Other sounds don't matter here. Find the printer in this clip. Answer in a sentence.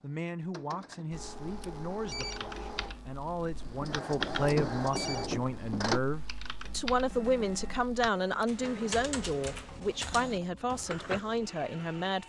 You can hear the printer from 0.0 to 12.2 s.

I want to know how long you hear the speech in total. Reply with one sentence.
The speech can be heard for 12 seconds in total.